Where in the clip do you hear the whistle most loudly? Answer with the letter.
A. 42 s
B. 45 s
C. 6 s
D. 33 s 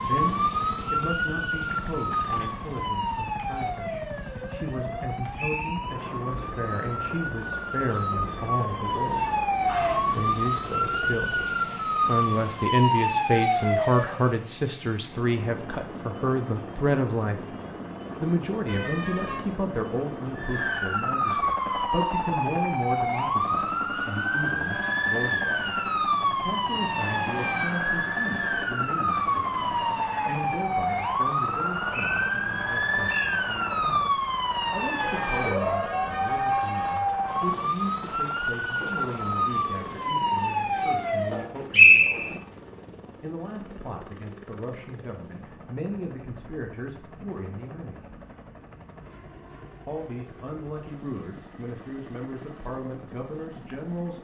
A.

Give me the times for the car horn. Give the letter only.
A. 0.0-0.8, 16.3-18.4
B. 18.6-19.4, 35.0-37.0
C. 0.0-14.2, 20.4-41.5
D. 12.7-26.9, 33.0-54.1
B.